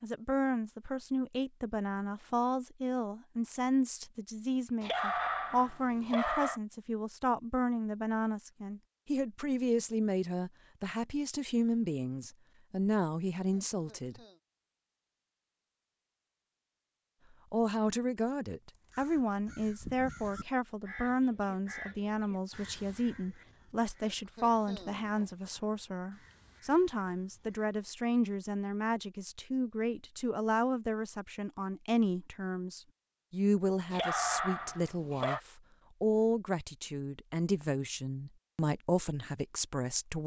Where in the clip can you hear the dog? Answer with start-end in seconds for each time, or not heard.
4.8-6.6, 33.9-35.4.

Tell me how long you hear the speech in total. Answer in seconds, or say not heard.
37 s.